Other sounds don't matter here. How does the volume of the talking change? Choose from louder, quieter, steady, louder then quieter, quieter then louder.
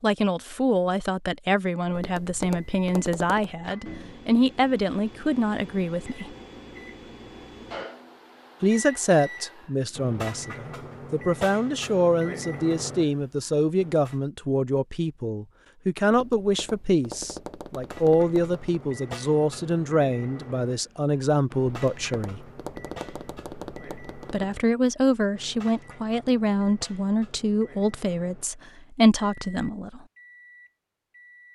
steady.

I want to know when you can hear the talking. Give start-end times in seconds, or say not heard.
0.0-6.3, 8.6-22.4, 24.3-30.0.